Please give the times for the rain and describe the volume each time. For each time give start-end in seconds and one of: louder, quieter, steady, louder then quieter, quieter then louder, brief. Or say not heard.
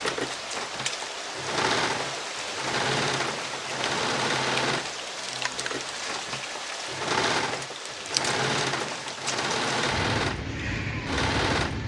0.0-11.8 steady.